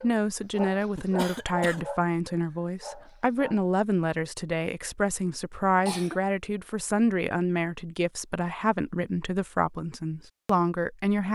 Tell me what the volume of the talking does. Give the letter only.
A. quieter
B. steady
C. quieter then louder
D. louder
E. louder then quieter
B.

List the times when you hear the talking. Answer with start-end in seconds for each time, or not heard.
0.0-11.3.